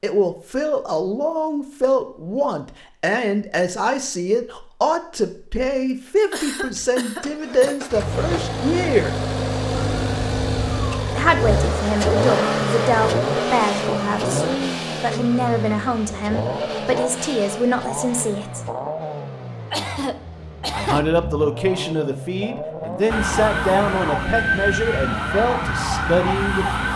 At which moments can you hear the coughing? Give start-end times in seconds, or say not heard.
6.3-7.8, 19.7-21.1.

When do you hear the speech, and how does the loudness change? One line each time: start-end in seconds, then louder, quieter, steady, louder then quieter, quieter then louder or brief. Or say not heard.
0.0-9.1 steady
11.1-18.6 steady
20.7-26.8 steady.